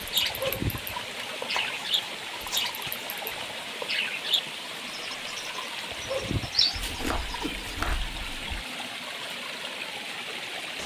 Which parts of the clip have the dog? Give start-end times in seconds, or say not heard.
0.2-0.9, 5.9-6.7.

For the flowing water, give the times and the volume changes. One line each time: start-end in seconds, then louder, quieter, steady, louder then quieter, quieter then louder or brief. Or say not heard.
0.0-10.8 steady.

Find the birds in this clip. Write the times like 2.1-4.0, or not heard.
0.0-8.0.